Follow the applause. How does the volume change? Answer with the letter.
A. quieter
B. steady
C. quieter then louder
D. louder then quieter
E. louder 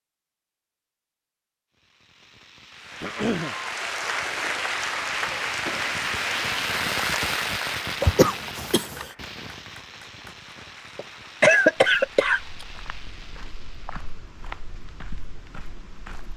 A.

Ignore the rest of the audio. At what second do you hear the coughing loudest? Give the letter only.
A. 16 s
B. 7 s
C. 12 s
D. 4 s
C.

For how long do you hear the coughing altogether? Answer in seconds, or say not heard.
3 s.